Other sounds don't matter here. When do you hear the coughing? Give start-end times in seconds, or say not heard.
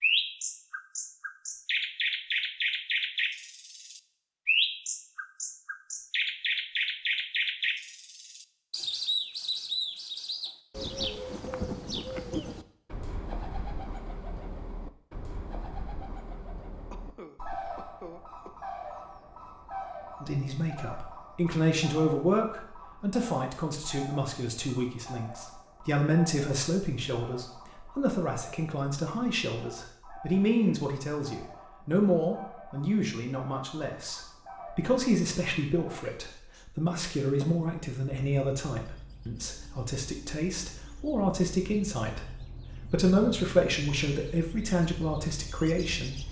16.9-18.5.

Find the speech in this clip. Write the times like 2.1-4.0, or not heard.
20.2-46.2.